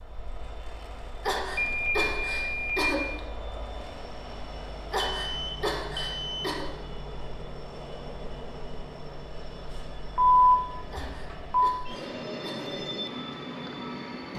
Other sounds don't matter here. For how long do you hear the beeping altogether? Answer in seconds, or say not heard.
4 s.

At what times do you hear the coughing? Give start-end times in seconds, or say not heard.
1.2-3.2, 4.8-6.7, 10.8-12.8.